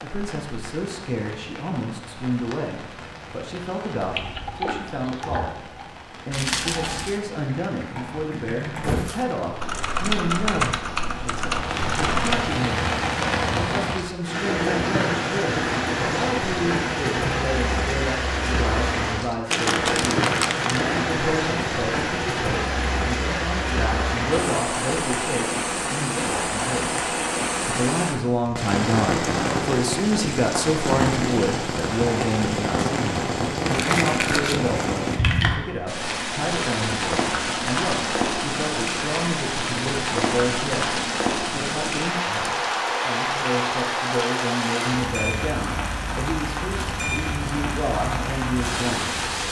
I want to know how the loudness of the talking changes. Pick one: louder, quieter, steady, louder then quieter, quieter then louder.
steady.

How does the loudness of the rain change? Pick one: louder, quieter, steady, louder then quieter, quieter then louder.
louder.